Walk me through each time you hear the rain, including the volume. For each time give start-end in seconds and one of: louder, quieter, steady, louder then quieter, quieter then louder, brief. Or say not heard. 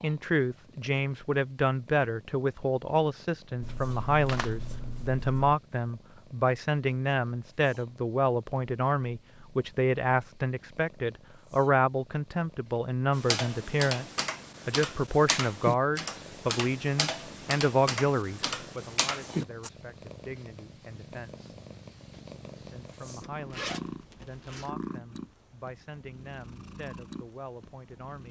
not heard.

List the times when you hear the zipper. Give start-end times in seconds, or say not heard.
23.2-24.7.